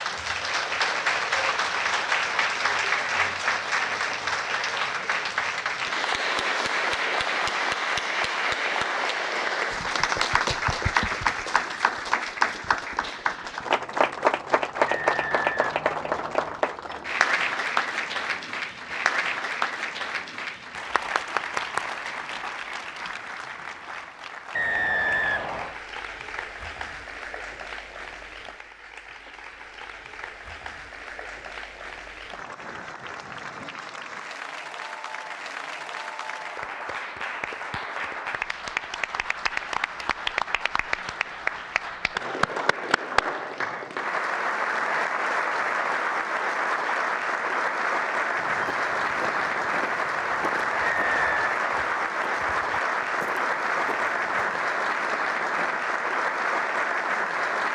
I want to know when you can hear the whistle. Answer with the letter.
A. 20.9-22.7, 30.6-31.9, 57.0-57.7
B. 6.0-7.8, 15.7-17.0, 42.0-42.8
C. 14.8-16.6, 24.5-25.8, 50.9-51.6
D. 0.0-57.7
C.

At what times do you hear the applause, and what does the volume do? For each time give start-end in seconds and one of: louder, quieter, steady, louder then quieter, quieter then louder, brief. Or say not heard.
0.0-57.7 quieter then louder.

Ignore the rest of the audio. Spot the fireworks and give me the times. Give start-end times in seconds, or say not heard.
not heard.